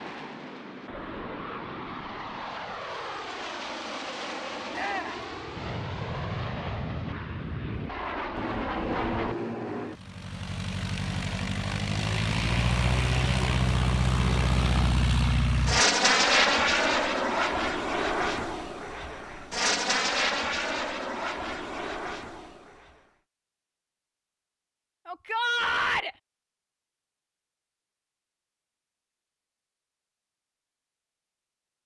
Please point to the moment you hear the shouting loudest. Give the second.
26 s.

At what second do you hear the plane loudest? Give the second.
16 s.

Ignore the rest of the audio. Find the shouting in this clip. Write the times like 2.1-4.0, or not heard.
4.7-5.2, 25.1-26.1.